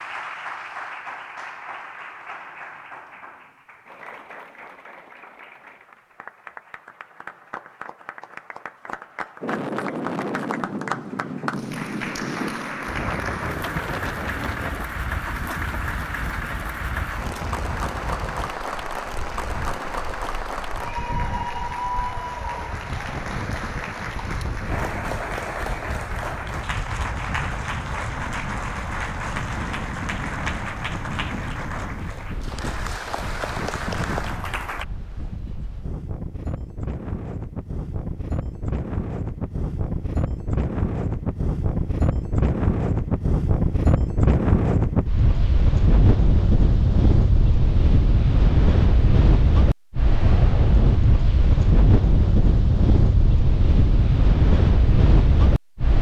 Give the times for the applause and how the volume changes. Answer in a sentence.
You can hear the applause from 0.0 to 34.9 s, getting louder.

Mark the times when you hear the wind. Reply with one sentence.
You can hear the wind from 9.4 to 55.9 s.